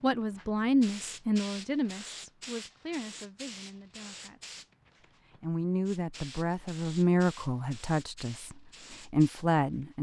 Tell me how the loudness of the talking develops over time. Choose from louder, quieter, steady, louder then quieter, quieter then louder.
quieter then louder.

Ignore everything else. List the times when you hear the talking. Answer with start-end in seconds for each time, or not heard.
0.0-4.6, 5.4-9.9.